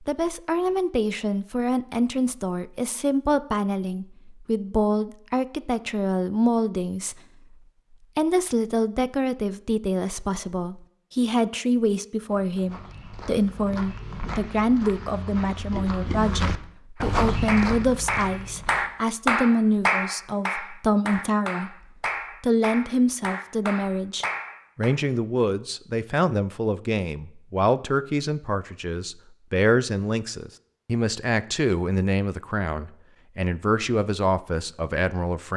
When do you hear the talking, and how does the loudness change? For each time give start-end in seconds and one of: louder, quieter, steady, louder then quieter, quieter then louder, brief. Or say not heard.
0.0-7.5 steady
8.2-21.8 steady
22.4-35.5 steady.